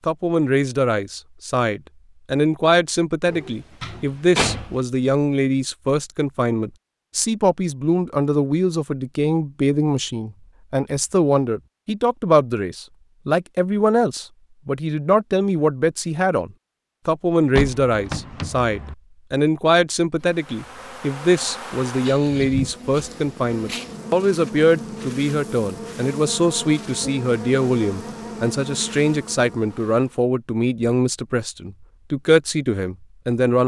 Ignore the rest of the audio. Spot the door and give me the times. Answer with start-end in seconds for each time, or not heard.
3.2-4.8, 17.5-18.9.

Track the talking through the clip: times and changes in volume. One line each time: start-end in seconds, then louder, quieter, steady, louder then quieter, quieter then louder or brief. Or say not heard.
0.1-33.6 steady.